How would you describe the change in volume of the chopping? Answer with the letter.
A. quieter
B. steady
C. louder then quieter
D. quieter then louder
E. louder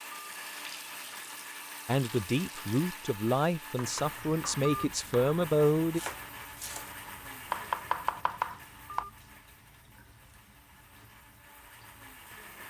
E.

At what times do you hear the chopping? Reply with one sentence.
You can hear the chopping from 3.7 to 9.1 s.